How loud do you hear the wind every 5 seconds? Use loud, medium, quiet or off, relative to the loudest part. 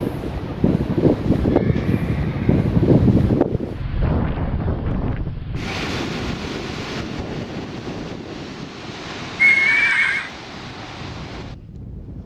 loud, medium, quiet.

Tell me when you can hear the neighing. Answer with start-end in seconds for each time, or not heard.
1.4-3.4, 9.3-10.3.